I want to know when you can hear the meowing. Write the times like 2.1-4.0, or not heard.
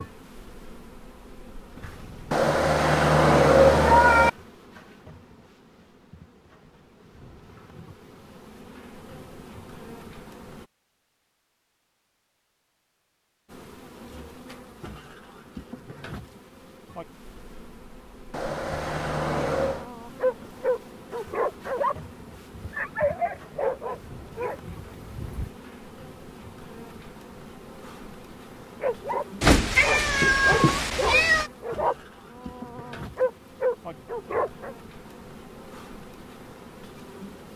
2.3-4.3, 18.3-19.9, 29.4-31.5.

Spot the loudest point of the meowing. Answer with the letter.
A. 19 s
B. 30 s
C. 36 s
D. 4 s
D.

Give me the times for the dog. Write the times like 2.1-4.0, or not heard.
19.6-25.5, 28.8-34.8.